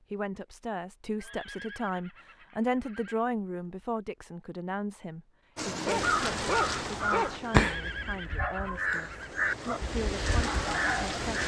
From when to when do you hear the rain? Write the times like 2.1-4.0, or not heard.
5.5-11.4.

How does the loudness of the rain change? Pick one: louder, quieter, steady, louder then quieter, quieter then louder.
quieter then louder.